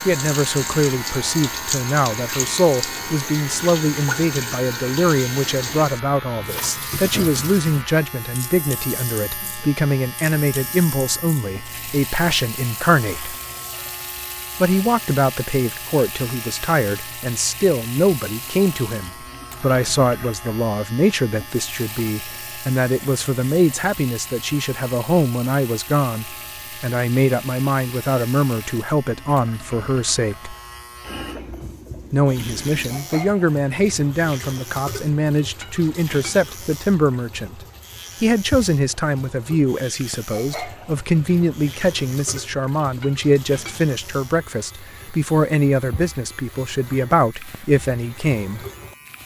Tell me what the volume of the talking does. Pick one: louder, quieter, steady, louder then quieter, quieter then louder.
steady.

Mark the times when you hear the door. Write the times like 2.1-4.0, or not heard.
not heard.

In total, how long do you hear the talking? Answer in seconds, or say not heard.
45 s.